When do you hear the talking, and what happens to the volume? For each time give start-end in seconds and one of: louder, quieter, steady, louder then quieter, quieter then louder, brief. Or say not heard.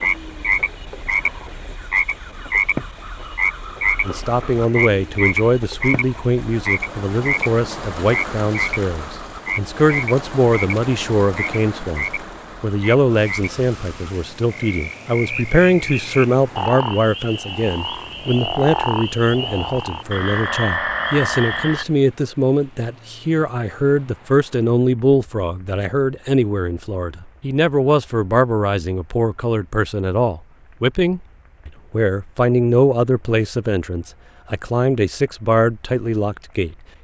4.0-36.8 steady.